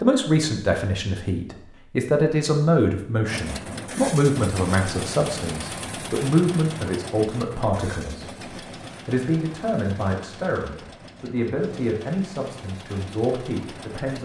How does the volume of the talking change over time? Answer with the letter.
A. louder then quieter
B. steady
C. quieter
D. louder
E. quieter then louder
C.